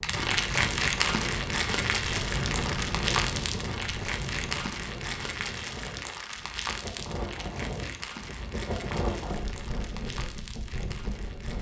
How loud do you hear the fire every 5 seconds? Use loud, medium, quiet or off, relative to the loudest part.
loud, medium, quiet.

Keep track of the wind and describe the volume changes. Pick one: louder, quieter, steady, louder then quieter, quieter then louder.
quieter then louder.